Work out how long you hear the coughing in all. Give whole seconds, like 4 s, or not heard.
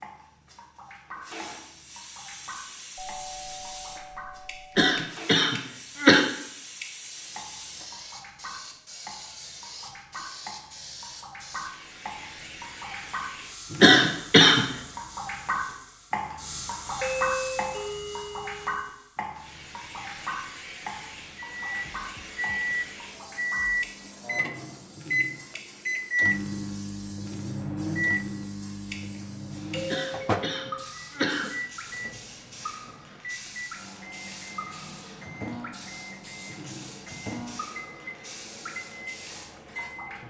4 s.